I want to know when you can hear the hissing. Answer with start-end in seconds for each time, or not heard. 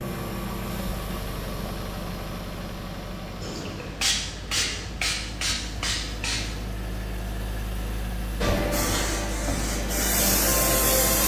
3.4-6.6, 8.4-11.2.